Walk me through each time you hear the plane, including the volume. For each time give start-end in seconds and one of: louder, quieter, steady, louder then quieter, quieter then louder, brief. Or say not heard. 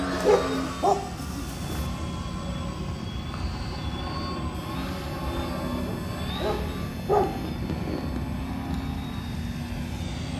0.0-10.3 steady.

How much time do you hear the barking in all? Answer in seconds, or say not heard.
3 s.